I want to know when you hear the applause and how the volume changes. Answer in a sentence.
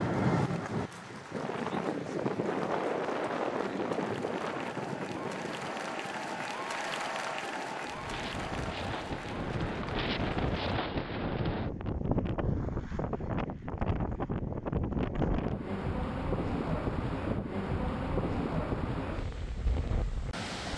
You can hear the applause from 0.0 to 10.8 s, getting louder then quieter.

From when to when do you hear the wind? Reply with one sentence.
The wind can be heard from 0.0 to 20.7 s.